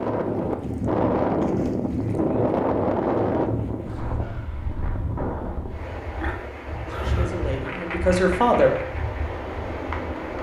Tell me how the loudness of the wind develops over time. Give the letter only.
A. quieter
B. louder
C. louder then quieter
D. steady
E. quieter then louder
A.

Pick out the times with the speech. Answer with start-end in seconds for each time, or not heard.
6.8-8.7.